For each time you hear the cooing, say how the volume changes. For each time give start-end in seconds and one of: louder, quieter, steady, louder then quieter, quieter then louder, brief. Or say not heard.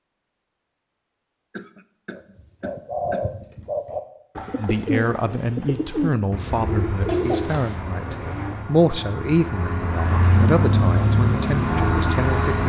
2.1-8.7 steady.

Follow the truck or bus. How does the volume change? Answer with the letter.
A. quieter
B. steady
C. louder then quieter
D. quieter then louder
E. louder
E.